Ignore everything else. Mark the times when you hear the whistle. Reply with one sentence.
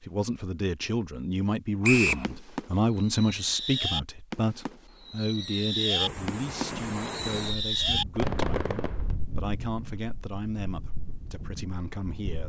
You can hear the whistle from 1.8 to 2.2 s.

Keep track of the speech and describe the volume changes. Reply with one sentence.
The loudness of the speech goes down.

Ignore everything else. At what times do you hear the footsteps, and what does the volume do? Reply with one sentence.
You can't hear the footsteps here.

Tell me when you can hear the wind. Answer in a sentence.
You can hear the wind from 6.0 to 12.4 s.